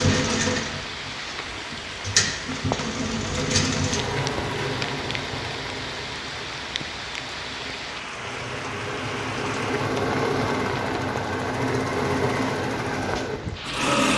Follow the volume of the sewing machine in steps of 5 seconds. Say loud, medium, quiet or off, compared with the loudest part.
loud, medium, loud.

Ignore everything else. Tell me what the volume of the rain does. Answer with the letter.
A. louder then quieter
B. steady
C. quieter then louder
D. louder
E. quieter
B.